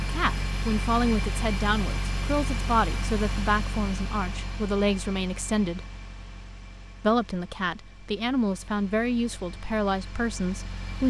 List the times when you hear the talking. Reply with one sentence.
You can hear the talking from 0.0 to 5.8 s and from 7.0 to 11.0 s.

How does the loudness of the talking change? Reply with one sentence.
The loudness of the talking stays about the same.